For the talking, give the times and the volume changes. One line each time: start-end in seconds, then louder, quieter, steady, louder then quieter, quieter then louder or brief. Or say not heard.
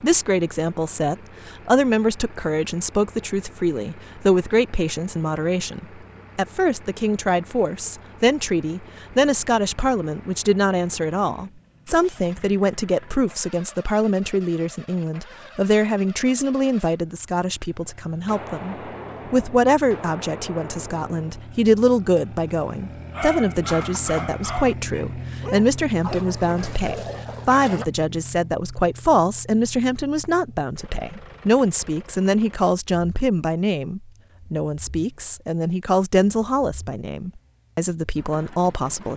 0.0-39.1 steady.